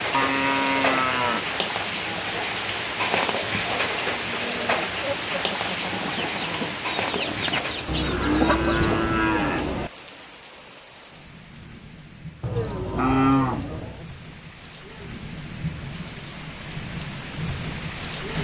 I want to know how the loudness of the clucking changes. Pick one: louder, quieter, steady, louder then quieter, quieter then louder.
louder.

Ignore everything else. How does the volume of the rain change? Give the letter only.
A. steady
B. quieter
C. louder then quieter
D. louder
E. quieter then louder
E.